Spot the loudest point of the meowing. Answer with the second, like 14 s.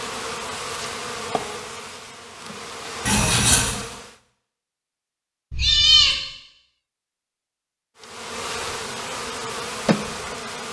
6 s.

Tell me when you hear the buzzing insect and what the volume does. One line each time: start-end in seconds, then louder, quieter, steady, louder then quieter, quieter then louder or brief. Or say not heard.
0.0-4.2 quieter then louder
8.0-10.6 brief.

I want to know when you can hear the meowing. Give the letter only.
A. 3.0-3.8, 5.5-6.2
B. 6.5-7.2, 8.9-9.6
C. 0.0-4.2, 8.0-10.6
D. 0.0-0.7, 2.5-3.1
A.